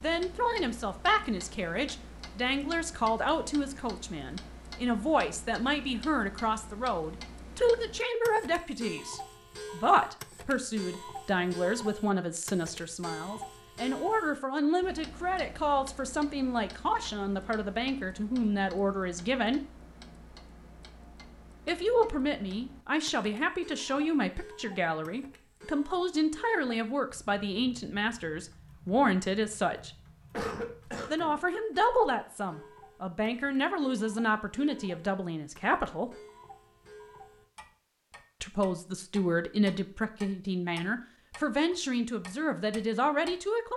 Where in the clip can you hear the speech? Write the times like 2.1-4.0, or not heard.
0.0-19.6, 21.6-29.9, 31.1-36.1, 38.4-43.7.